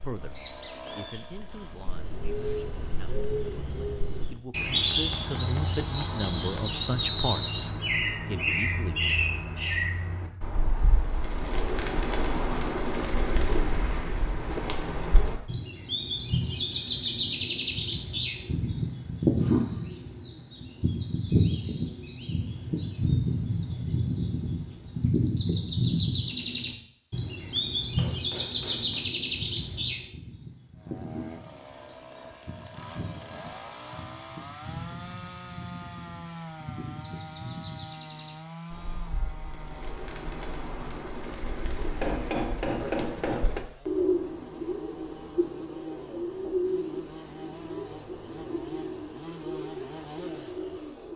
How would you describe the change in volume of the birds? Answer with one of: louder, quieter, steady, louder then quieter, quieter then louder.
quieter then louder.